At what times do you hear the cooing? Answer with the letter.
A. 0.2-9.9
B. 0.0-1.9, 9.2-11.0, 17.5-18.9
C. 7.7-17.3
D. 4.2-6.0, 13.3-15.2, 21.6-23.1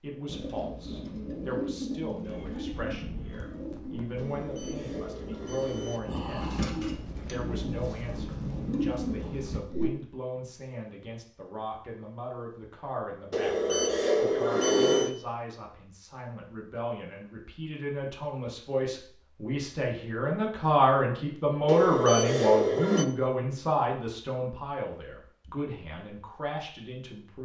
A.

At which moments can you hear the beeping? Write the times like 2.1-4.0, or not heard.
4.2-6.0, 13.3-15.2, 21.6-23.1.